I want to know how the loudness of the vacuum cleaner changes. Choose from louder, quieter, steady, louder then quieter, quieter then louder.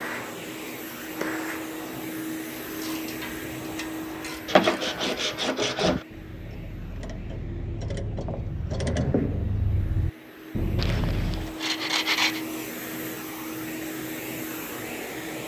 quieter then louder.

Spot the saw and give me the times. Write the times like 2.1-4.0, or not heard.
4.5-6.0, 10.8-12.4.